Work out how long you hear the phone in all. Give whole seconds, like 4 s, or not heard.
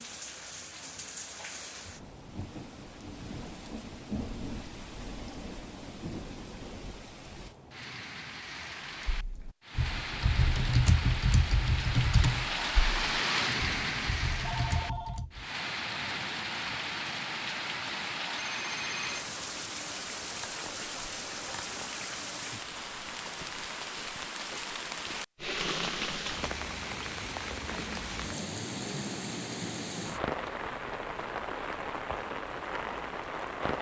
2 s.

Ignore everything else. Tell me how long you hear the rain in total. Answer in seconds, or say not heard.
34 s.